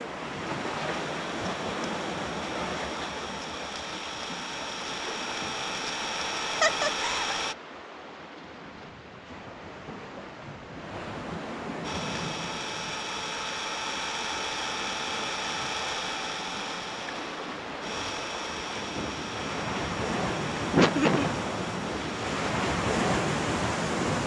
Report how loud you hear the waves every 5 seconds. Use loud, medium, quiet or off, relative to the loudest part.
medium, quiet, medium, medium, loud.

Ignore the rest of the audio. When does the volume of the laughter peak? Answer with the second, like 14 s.
21 s.